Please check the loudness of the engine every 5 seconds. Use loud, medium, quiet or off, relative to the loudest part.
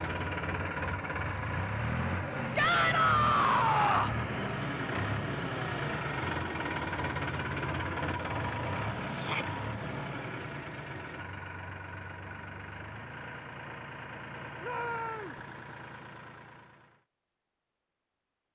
loud, loud, medium, quiet.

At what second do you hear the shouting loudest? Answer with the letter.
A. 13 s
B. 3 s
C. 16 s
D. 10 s
B.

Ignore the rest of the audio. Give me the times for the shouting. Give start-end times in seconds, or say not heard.
2.5-4.2, 9.2-9.6, 14.6-15.3.